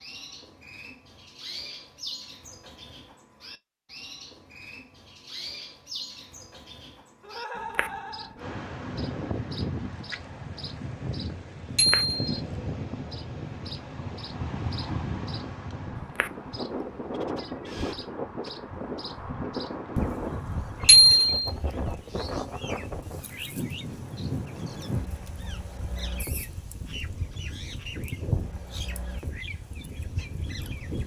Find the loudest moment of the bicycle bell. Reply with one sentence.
The volume of the bicycle bell peaks at 21 seconds.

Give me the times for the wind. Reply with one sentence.
You can hear the wind from 8.3 to 31.0 s.